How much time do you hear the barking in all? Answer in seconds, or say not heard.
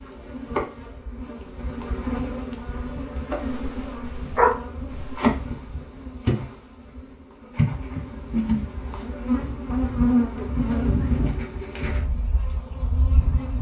2 s.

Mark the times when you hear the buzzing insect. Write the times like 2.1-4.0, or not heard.
0.0-13.5.